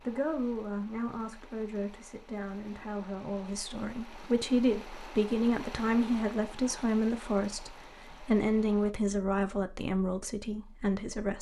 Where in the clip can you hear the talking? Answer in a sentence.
The talking can be heard from 0.0 to 11.3 s.